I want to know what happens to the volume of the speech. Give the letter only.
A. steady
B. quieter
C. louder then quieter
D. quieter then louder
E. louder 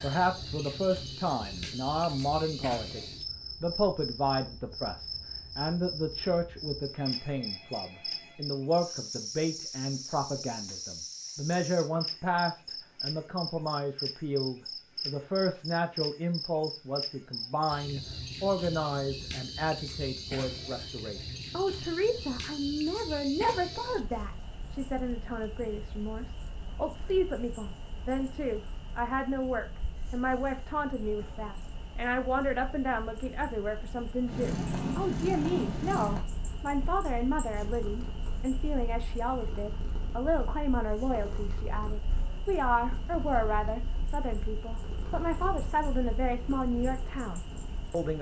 A.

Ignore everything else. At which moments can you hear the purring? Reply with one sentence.
The purring can be heard from 34.2 to 48.0 s.